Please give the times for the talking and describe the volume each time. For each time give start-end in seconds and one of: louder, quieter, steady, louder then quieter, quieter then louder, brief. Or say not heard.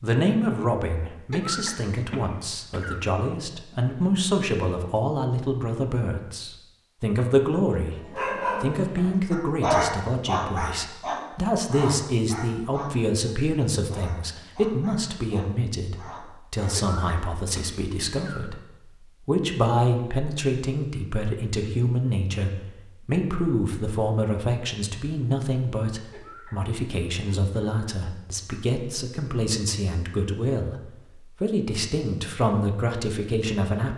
0.0-33.9 steady.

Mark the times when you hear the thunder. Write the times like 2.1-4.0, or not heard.
not heard.